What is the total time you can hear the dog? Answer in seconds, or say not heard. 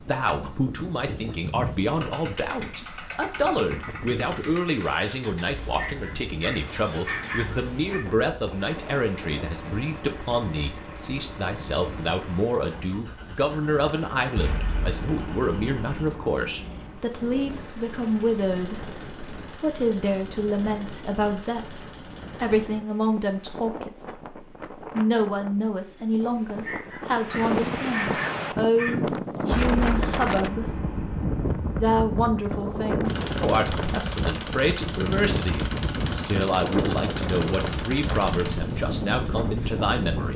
5 s.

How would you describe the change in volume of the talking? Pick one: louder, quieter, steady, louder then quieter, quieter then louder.
steady.